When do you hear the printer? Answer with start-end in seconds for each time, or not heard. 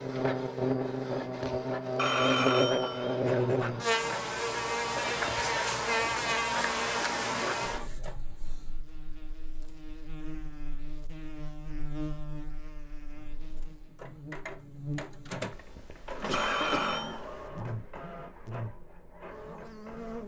0.0-8.8, 13.0-20.2.